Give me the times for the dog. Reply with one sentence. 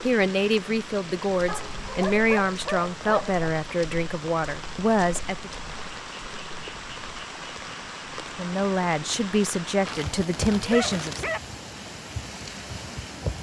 You can hear the dog from 1.4 to 3.4 s and from 9.8 to 11.4 s.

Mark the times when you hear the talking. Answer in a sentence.
The talking can be heard from 0.0 to 5.5 s and from 8.3 to 11.3 s.